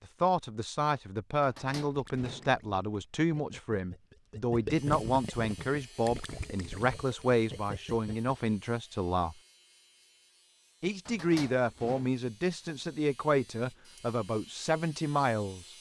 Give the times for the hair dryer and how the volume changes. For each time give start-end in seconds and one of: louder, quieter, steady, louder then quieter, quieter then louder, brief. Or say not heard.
not heard.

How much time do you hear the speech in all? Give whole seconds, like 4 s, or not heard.
14 s.